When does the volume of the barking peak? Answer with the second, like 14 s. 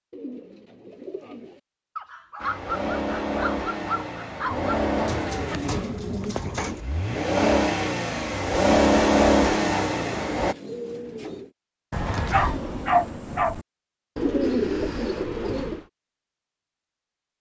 13 s.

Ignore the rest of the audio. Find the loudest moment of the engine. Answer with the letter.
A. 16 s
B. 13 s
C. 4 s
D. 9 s
D.